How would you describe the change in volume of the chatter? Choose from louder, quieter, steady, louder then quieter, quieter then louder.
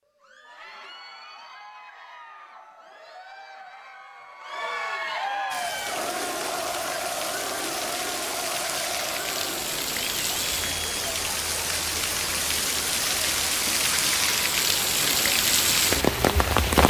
louder then quieter.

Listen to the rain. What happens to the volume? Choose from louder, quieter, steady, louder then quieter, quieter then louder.
louder.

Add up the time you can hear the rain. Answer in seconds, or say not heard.
11 s.